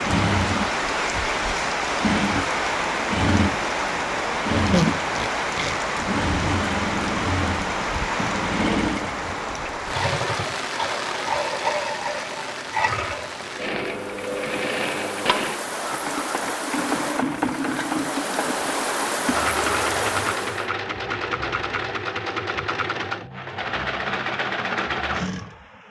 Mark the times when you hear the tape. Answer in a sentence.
The tape can be heard from 4.7 to 5.8 s.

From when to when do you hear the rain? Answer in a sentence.
The rain can be heard from 0.0 to 20.7 s.